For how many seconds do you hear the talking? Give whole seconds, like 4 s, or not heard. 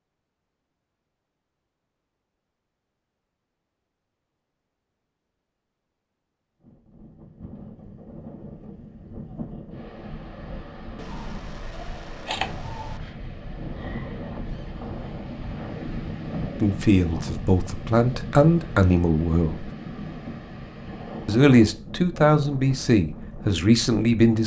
6 s.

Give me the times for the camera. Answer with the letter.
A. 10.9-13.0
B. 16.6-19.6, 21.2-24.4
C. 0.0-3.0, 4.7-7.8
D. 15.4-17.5
A.